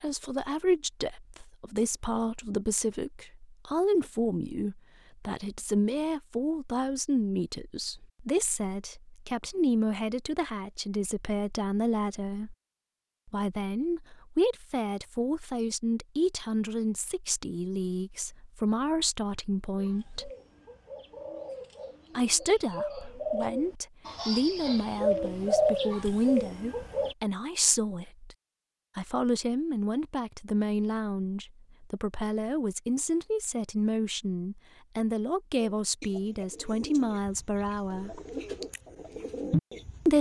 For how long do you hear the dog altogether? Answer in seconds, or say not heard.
not heard.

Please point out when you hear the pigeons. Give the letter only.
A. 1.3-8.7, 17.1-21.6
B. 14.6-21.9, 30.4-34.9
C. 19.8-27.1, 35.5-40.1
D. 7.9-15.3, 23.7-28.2
C.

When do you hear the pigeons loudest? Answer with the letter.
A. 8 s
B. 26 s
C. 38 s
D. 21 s
B.